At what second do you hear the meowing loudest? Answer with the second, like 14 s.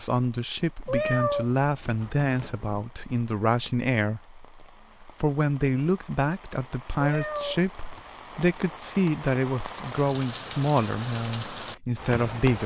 1 s.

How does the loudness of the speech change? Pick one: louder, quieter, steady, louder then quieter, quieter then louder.
steady.